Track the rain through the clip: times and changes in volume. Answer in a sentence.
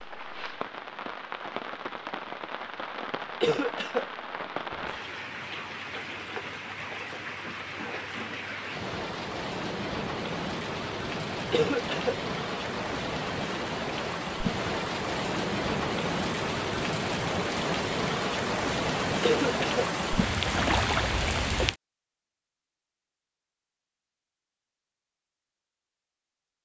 You can hear the rain from 0.0 to 21.8 s, getting louder.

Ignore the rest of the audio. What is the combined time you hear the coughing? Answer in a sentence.
You can hear the coughing for 2 seconds altogether.